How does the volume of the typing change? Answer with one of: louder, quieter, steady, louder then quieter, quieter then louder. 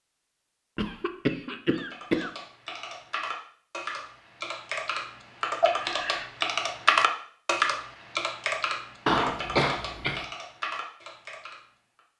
louder then quieter.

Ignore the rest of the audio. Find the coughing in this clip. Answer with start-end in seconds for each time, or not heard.
0.8-2.3, 5.6-6.3, 9.1-10.2.